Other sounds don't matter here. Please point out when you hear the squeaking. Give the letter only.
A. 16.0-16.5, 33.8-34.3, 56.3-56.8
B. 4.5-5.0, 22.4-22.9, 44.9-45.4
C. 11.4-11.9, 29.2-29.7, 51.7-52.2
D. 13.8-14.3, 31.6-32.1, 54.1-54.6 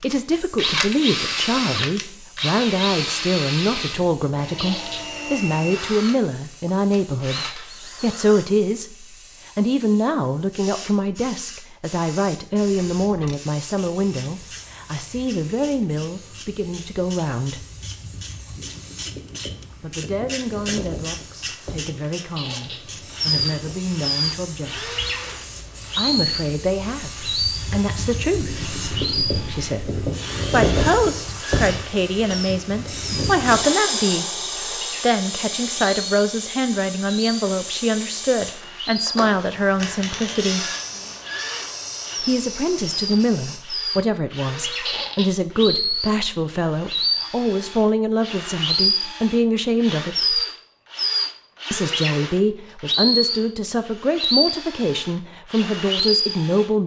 B.